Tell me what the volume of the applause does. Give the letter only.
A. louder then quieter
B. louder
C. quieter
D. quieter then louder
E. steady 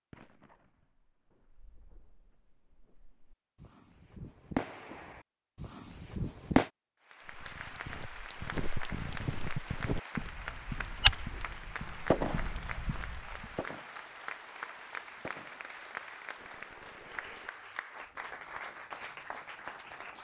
E.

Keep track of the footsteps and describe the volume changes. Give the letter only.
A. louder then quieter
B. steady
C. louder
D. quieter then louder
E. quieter
A.